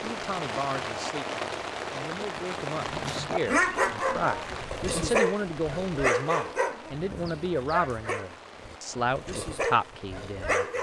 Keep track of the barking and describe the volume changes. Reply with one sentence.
The volume of the barking goes down.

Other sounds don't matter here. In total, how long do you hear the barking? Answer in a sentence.
You can hear the barking for 8 seconds altogether.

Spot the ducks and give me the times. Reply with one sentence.
You can't hear the ducks here.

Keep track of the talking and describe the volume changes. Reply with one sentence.
The loudness of the talking goes up.